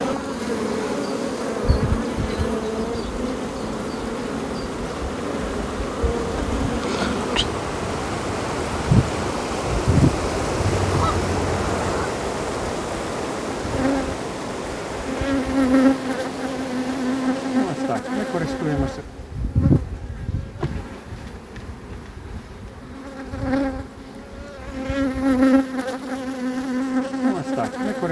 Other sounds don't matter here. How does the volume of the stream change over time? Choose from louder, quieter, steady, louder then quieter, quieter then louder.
louder then quieter.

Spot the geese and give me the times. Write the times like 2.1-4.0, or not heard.
10.6-12.2.